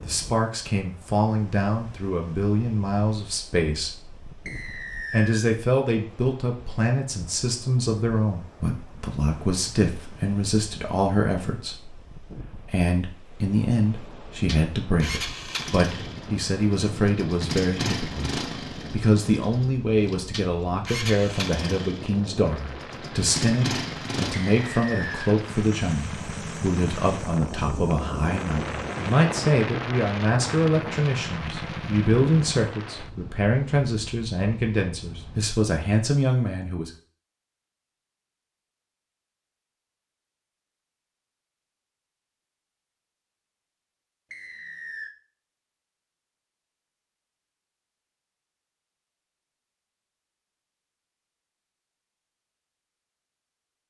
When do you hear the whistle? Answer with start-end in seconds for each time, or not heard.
4.5-5.5, 24.4-25.4, 44.3-45.1.